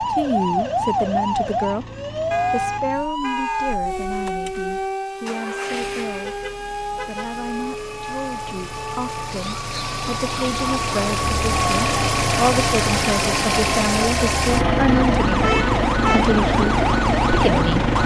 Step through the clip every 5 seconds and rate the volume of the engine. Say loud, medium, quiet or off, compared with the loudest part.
quiet, quiet, loud, loud.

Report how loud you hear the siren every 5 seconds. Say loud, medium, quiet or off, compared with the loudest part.
loud, medium, medium, loud.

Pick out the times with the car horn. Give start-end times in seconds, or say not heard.
2.3-3.8, 6.2-7.3, 15.4-16.4.